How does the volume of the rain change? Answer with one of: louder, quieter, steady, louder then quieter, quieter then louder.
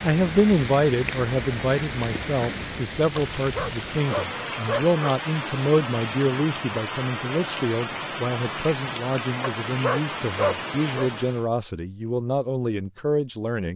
steady.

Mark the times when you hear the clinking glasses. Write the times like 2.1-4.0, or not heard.
not heard.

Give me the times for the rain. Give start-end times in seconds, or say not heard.
0.0-11.4.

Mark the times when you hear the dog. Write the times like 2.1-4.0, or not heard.
3.1-5.2, 9.4-11.1.